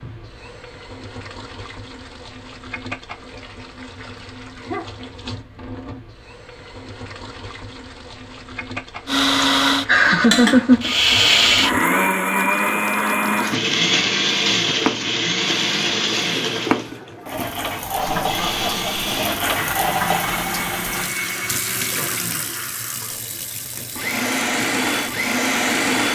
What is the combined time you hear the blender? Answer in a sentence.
The blender can be heard for 17 seconds in total.